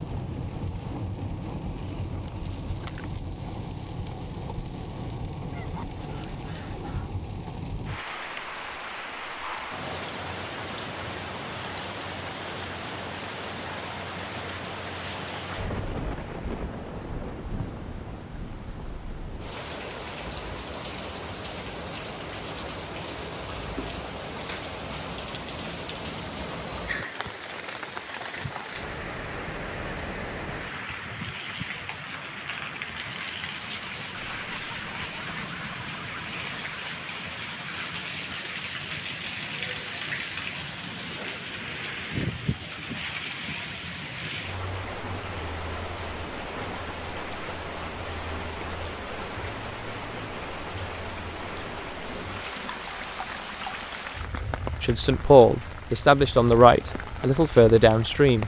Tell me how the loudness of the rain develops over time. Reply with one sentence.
The volume of the rain stays about the same.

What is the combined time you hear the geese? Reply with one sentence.
You can hear the geese for 4 seconds altogether.